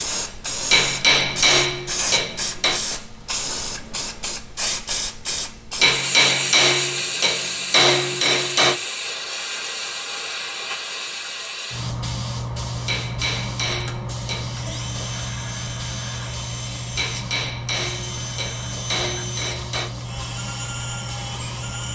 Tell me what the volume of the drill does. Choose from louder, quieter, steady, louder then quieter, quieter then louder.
steady.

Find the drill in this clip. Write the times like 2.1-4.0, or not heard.
13.7-21.9.